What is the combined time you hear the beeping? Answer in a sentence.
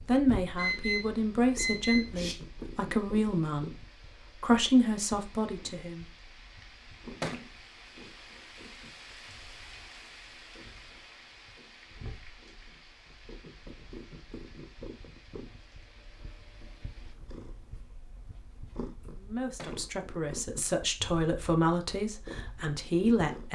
The beeping can be heard for 2 seconds in total.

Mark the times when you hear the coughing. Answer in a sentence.
The coughing can't be heard in this clip.